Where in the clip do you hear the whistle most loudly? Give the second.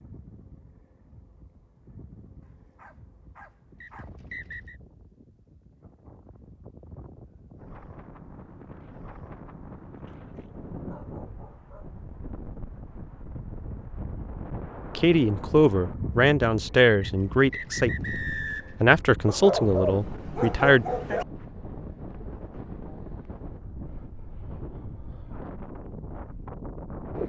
18 s.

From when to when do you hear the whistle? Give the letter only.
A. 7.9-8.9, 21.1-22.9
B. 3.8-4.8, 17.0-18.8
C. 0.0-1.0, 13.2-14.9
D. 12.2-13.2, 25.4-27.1
B.